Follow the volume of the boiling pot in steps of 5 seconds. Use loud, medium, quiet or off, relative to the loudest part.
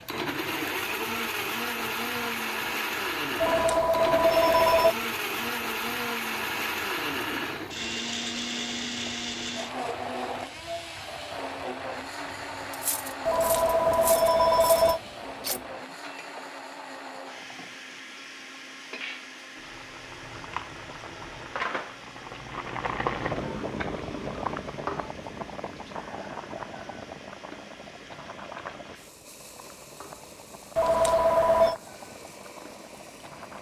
quiet, quiet, quiet, quiet, loud, medium, quiet.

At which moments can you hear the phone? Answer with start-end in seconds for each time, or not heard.
3.4-5.0, 13.2-15.0, 30.8-31.8.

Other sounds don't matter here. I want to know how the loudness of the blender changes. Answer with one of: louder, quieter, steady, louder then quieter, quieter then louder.
quieter.